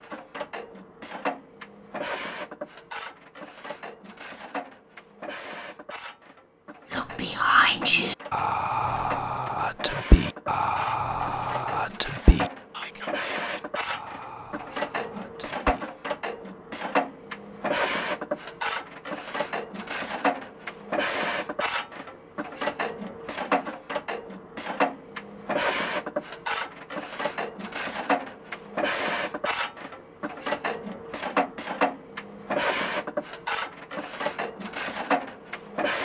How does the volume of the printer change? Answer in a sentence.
The loudness of the printer goes up.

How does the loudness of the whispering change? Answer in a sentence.
The volume of the whispering goes down.